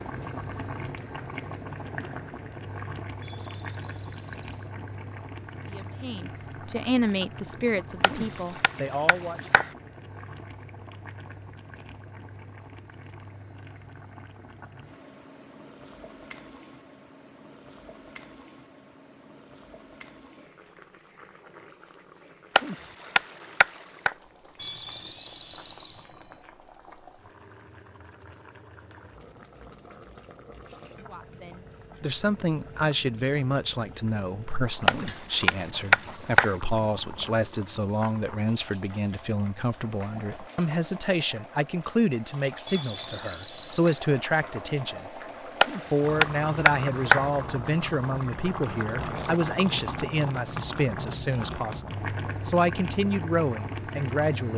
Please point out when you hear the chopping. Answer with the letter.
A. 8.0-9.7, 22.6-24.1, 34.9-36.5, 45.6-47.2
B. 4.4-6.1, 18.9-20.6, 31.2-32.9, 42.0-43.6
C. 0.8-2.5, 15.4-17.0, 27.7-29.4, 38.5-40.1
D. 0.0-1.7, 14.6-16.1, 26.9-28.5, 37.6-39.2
A.